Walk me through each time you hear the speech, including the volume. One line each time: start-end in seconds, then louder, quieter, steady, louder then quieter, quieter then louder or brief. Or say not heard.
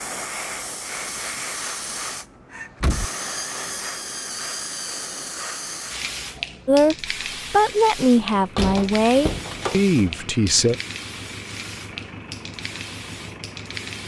6.7-10.8 steady.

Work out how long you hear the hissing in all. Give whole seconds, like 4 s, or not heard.
14 s.